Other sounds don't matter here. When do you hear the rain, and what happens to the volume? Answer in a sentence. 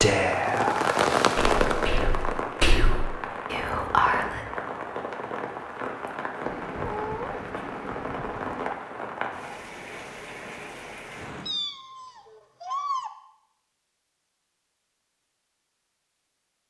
The rain can be heard from 0.0 to 11.5 s, getting quieter.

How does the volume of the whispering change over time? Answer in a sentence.
The volume of the whispering goes down, then up.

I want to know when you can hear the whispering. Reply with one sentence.
You can hear the whispering from 0.0 to 4.5 s.